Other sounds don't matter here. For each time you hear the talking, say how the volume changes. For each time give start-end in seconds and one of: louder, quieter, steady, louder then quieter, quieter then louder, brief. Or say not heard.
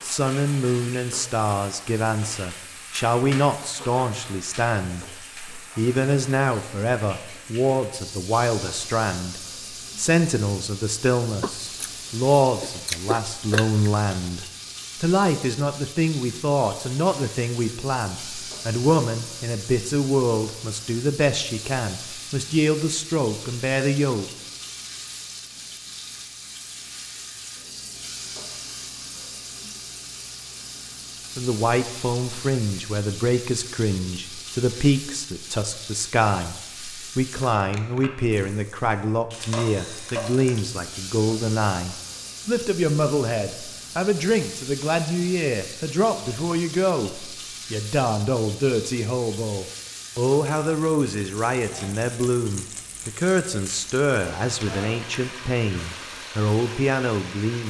0.0-24.2 steady
31.4-57.6 steady.